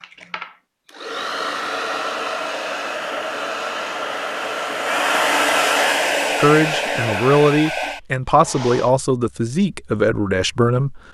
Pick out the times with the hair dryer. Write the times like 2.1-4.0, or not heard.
0.0-8.9.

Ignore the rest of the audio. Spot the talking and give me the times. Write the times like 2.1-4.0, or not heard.
6.4-11.0.